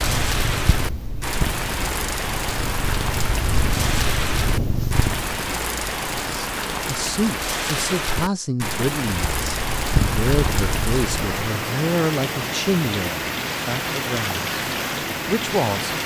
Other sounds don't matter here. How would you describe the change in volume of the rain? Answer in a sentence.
The volume of the rain stays about the same.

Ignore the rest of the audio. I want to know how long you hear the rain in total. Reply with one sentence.
The rain can be heard for 16 seconds in total.